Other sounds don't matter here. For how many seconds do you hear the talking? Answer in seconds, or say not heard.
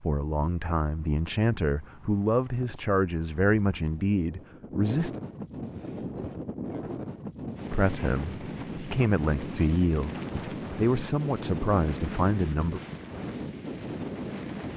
10 s.